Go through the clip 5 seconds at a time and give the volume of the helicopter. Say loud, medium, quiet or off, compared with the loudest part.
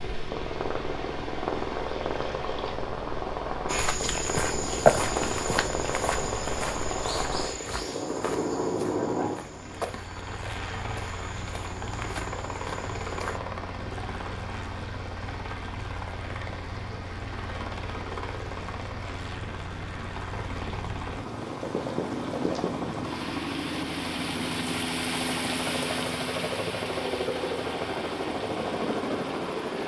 loud, loud, medium, medium, loud, loud.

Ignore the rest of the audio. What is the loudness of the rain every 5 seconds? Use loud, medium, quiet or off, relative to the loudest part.
medium, medium, medium, medium, loud, loud.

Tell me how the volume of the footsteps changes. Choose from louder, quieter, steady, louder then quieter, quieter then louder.
quieter.